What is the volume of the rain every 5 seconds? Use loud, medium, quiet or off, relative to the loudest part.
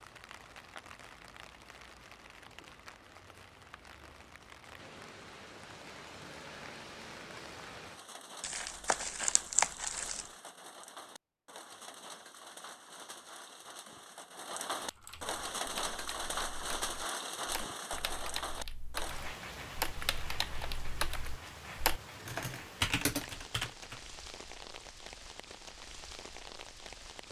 quiet, medium, medium, loud, medium, medium.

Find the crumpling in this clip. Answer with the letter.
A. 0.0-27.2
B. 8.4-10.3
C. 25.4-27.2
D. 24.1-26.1
B.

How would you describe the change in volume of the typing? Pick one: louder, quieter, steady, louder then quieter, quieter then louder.
louder.